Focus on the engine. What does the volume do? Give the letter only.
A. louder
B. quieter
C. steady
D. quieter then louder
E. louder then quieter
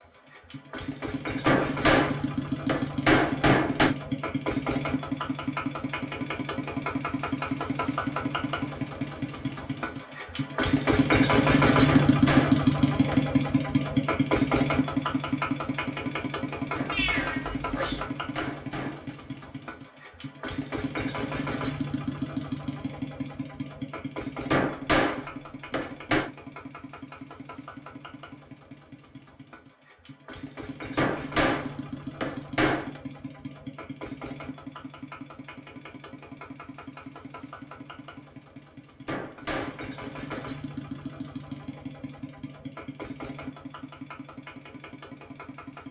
E.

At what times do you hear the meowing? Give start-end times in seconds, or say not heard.
16.9-18.1.